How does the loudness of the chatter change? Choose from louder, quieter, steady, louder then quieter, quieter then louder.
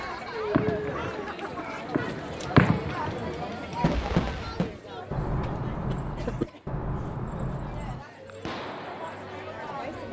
quieter then louder.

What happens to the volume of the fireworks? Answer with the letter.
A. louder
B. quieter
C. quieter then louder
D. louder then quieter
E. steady
D.